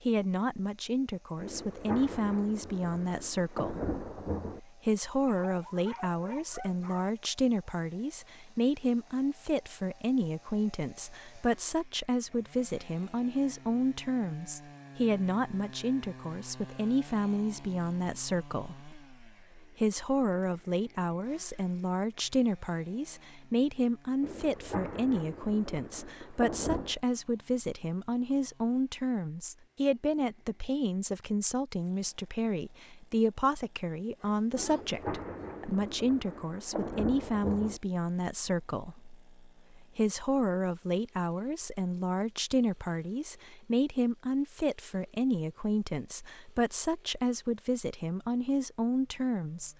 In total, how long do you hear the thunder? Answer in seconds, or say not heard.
9 s.